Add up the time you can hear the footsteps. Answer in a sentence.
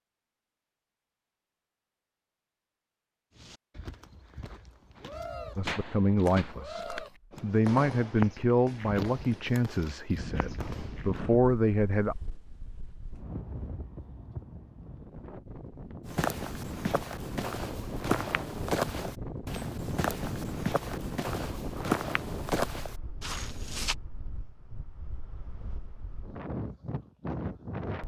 You can hear the footsteps for 16 seconds altogether.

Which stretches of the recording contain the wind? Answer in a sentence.
The wind can be heard from 10.2 to 28.0 s.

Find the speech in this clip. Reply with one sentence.
The speech can be heard from 5.5 to 12.2 s.